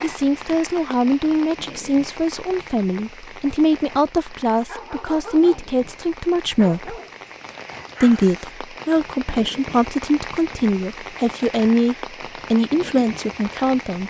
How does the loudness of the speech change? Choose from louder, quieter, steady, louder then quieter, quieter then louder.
steady.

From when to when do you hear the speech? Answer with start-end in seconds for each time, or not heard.
0.0-7.0, 8.0-14.0.